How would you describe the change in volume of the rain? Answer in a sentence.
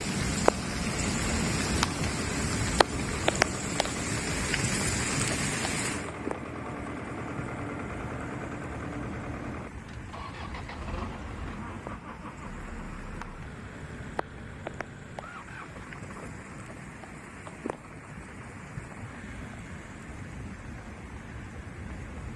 The volume of the rain goes down.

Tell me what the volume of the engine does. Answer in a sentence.
The volume of the engine goes down.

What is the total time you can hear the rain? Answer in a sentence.
You can hear the rain for 22 seconds altogether.